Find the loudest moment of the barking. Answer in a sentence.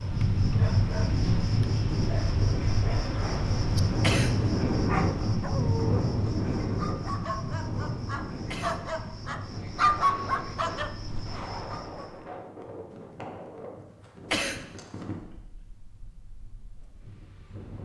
The loudest moment of the barking is at 10 seconds.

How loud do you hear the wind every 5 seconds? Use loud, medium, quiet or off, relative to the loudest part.
loud, loud, quiet, quiet.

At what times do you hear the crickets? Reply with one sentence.
You can hear the crickets from 0.0 to 12.2 s.